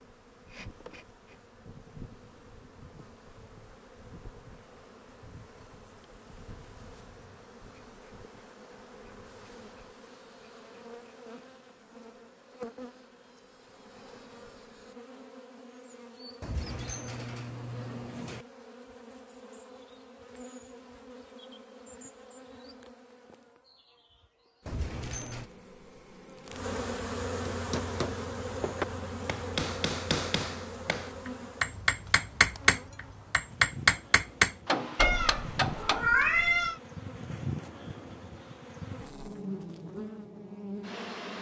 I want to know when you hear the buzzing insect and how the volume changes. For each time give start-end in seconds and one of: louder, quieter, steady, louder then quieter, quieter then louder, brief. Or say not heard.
0.0-41.3 louder.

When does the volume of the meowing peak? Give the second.
36 s.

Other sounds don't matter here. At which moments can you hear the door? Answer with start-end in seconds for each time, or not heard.
16.4-18.4, 24.6-25.4.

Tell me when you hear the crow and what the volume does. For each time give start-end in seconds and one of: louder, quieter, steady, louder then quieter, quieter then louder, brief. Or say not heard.
not heard.